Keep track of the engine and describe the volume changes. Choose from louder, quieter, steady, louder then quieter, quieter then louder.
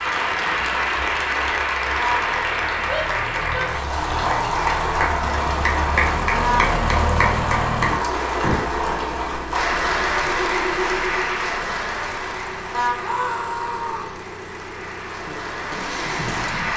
louder then quieter.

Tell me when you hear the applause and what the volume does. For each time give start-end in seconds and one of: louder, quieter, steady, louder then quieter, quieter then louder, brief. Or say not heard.
0.0-16.7 quieter.